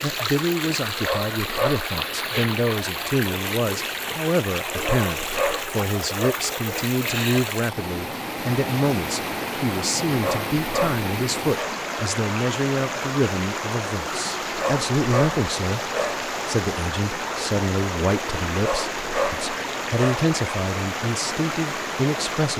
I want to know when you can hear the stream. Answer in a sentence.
The stream can be heard from 0.0 to 22.5 s.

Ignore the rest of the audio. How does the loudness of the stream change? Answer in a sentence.
The loudness of the stream stays about the same.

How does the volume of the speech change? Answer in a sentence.
The loudness of the speech stays about the same.